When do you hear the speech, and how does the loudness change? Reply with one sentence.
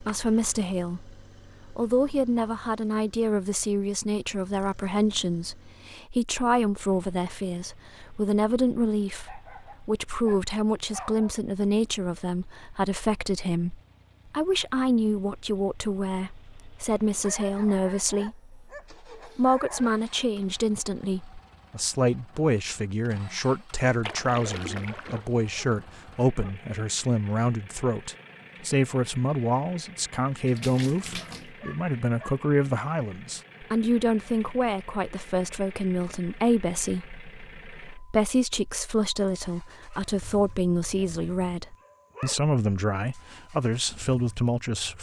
You can hear the speech from 0.0 to 44.9 s, at a steady volume.